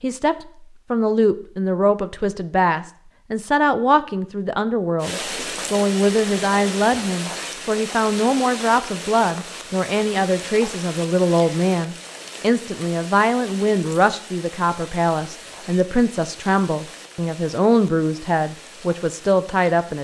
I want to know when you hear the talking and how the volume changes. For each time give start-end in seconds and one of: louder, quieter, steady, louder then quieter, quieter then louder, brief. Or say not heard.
0.0-19.9 steady.